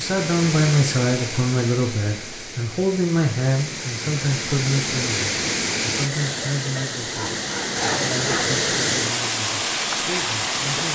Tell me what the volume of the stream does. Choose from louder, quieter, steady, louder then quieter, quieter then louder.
louder.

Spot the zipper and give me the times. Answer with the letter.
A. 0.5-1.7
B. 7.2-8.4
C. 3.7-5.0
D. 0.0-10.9
B.